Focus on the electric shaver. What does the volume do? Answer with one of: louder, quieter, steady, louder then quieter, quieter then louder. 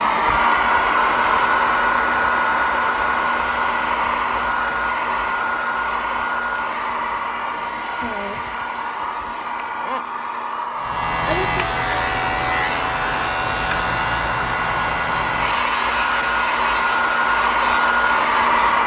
quieter.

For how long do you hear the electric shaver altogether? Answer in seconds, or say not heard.
8 s.